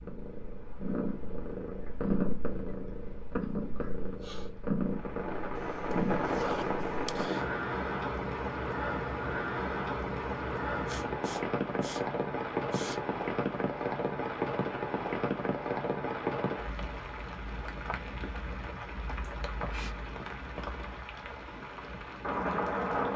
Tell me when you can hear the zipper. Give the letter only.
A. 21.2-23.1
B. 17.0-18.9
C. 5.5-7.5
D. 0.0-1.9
C.